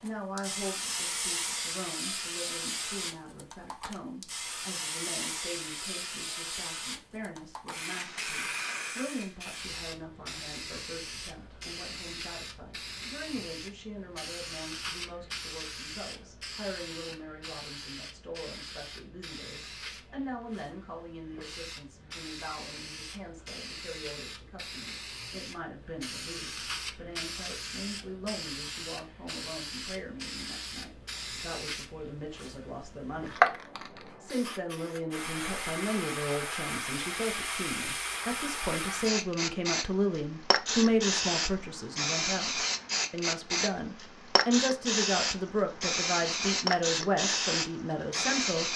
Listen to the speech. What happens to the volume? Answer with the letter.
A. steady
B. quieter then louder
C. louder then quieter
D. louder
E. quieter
D.